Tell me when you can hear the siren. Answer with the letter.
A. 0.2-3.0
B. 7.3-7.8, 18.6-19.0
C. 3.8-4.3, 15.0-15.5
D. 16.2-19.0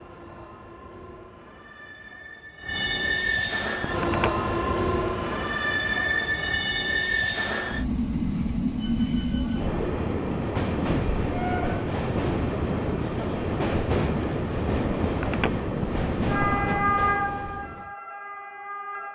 D.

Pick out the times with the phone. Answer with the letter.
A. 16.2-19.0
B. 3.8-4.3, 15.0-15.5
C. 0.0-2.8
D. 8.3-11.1
B.